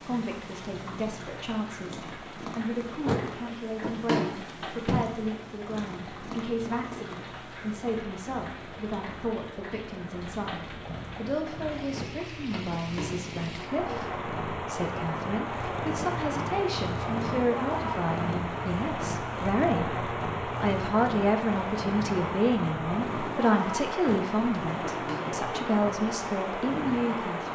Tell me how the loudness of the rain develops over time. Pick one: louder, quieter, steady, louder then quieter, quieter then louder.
louder.